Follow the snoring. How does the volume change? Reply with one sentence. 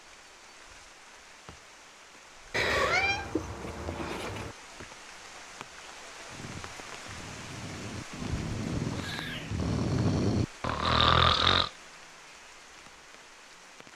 The volume of the snoring goes up.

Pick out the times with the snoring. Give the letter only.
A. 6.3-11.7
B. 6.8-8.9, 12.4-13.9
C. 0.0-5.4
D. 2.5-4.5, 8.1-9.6
A.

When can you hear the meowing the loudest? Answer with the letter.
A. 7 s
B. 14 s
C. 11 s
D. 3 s
D.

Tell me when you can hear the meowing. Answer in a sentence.
You can hear the meowing from 2.5 to 4.5 s and from 8.1 to 9.6 s.